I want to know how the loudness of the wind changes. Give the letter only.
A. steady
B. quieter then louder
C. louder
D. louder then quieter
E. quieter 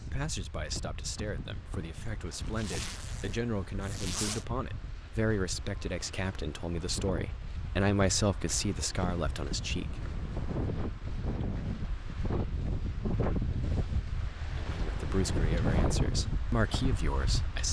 C.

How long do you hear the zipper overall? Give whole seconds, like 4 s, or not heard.
2 s.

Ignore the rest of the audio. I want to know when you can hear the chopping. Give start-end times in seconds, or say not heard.
not heard.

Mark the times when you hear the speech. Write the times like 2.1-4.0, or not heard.
0.1-9.8, 14.6-17.6.